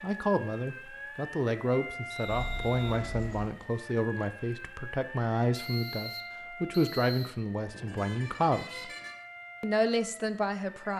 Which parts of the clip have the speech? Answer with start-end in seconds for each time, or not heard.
0.0-8.9, 9.6-10.9.